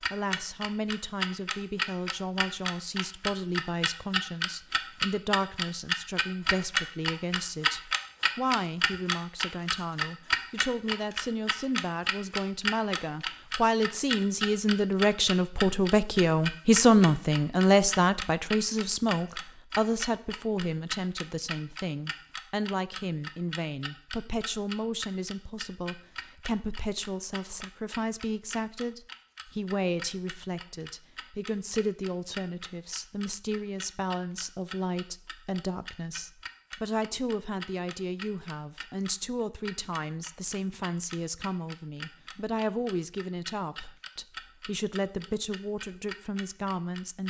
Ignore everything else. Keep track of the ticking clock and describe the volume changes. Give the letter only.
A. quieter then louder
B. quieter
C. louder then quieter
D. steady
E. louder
B.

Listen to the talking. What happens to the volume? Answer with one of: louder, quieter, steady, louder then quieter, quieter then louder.
louder then quieter.